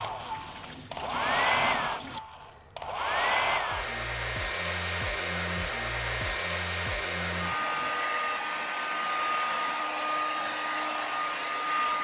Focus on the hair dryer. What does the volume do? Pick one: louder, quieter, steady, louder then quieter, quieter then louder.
steady.